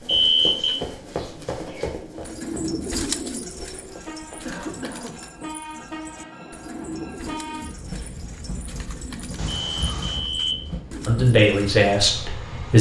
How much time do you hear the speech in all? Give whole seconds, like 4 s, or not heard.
2 s.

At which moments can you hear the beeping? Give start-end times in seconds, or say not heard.
0.1-0.8, 9.4-10.7.